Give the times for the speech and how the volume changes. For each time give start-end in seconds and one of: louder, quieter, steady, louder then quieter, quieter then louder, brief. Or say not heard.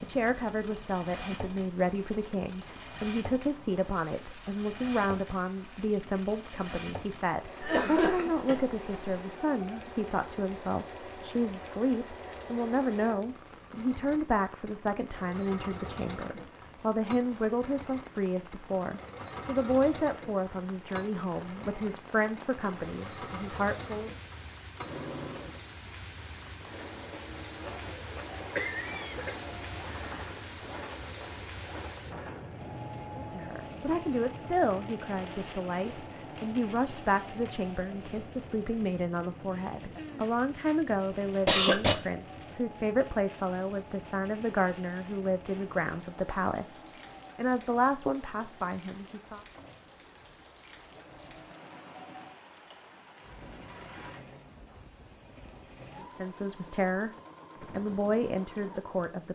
0.0-24.1 steady
33.1-49.4 steady
56.0-57.1 brief
57.7-59.3 brief.